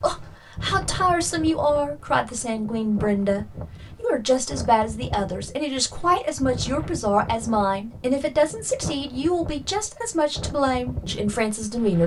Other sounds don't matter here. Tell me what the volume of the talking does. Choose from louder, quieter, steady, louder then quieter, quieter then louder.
steady.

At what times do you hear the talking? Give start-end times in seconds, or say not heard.
0.0-12.0.